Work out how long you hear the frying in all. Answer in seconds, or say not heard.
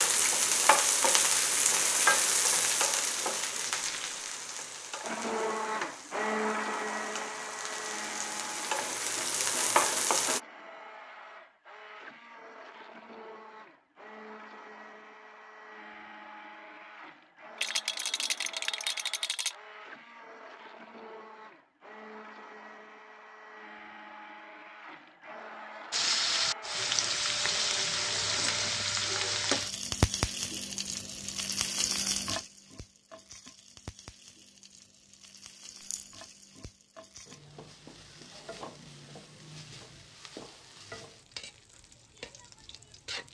28 s.